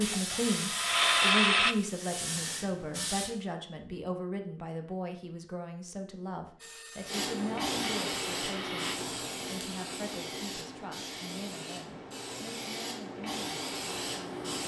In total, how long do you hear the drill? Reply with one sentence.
The drill can be heard for 4 seconds in total.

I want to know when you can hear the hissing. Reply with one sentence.
The hissing can be heard from 0.0 to 3.3 s and from 7.0 to 14.6 s.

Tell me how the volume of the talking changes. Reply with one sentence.
The volume of the talking goes down.